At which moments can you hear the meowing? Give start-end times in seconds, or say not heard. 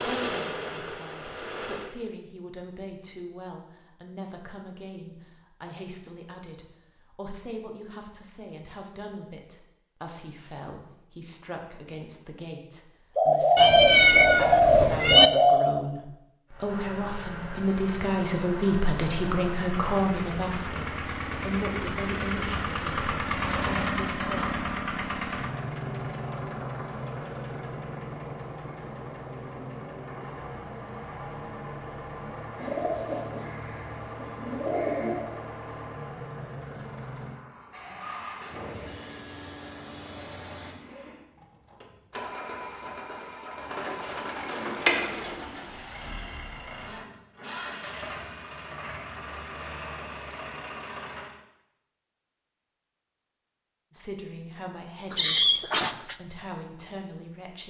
13.6-15.3, 55.1-56.1.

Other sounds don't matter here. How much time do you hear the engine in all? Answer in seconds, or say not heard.
37 s.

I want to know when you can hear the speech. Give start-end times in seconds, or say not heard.
0.0-24.4, 53.9-57.6.